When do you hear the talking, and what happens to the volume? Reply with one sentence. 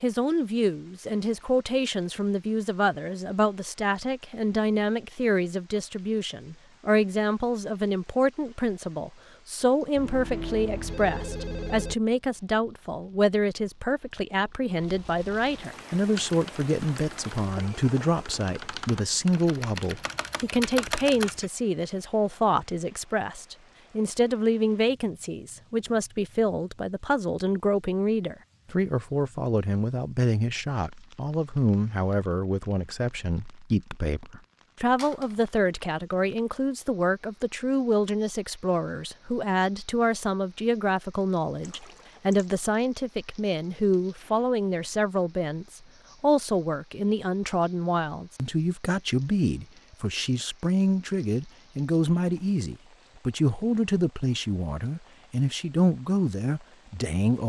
You can hear the talking from 0.0 to 57.4 s, at a steady volume.